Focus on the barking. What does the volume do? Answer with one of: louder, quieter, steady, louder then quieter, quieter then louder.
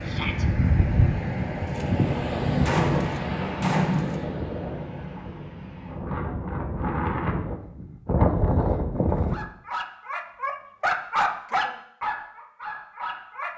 louder then quieter.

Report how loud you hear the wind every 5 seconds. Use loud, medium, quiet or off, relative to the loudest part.
loud, loud, off.